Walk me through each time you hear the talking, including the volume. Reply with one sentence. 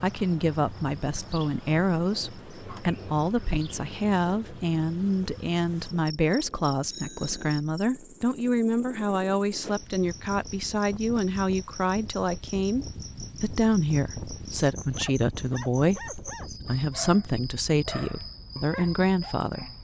The talking can be heard from 0.0 to 19.6 s, at a steady volume.